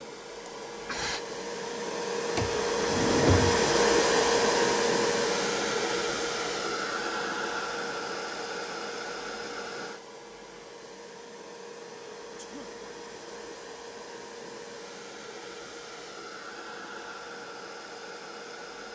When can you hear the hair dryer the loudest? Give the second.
4 s.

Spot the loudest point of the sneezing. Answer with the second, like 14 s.
1 s.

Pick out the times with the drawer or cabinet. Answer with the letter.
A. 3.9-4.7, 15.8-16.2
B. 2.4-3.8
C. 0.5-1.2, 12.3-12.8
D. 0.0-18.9
B.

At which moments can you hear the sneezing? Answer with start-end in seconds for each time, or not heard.
0.5-1.2, 12.3-12.8.